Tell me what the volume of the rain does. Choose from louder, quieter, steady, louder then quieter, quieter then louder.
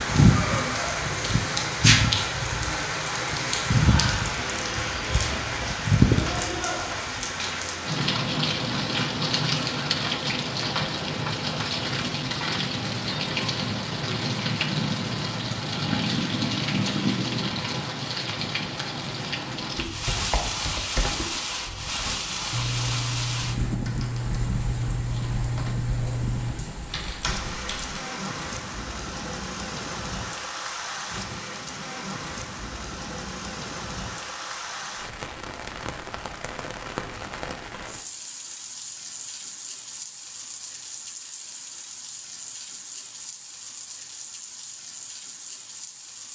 quieter.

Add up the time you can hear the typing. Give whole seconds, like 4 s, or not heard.
8 s.